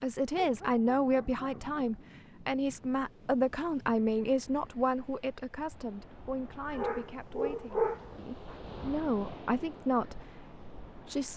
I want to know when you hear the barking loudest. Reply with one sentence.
The volume of the barking peaks at 8 seconds.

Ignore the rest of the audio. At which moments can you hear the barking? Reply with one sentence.
The barking can be heard from 0.3 to 2.0 s and from 6.7 to 8.6 s.